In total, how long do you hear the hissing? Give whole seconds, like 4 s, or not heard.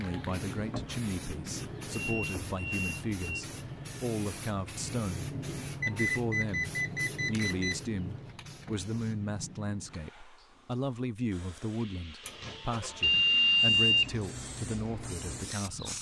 16 s.